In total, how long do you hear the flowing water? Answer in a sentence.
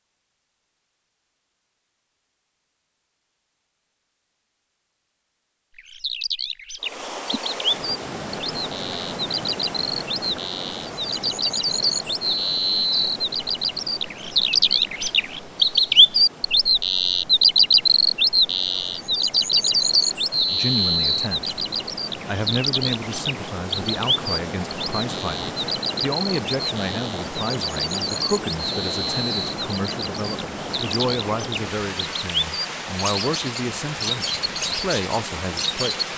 The flowing water can be heard for 29 seconds in total.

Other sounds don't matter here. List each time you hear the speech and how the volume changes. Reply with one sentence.
You can hear the speech briefly from 20.5 to 21.6 s; and from 22.2 to 36.1 s, at a steady volume.